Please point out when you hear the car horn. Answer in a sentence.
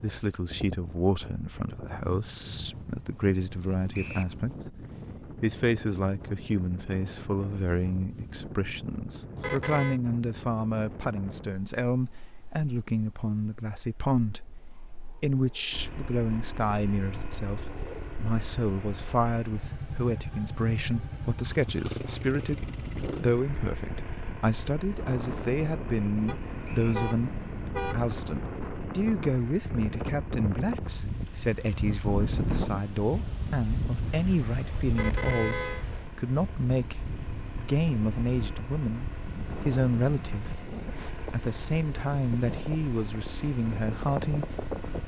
The car horn can be heard from 9.3 to 10.0 s, from 26.2 to 28.1 s and from 34.9 to 35.9 s.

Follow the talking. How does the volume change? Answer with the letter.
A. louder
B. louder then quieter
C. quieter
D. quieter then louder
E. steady
E.